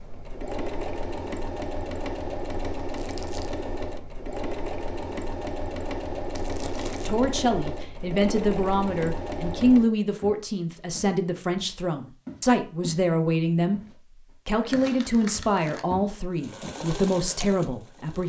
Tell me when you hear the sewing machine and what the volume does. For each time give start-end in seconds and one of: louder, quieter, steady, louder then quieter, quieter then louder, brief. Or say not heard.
0.0-9.9 steady
16.3-18.2 brief.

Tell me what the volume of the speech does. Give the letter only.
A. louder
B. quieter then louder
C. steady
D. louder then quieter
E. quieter
C.